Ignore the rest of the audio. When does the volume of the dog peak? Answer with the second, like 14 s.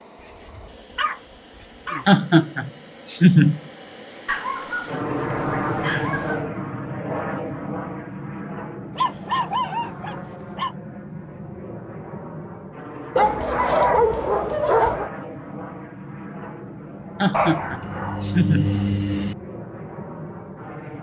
14 s.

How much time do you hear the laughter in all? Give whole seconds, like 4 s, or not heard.
3 s.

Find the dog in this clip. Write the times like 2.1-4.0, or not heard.
0.4-2.2, 4.2-6.5, 8.9-10.8, 13.2-15.1, 17.3-19.4.